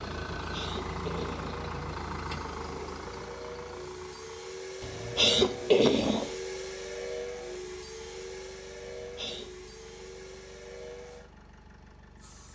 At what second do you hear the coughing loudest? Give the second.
6 s.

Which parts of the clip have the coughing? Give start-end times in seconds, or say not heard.
0.4-1.6, 4.8-6.3, 8.8-9.5.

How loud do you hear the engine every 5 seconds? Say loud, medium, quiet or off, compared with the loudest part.
loud, quiet, quiet.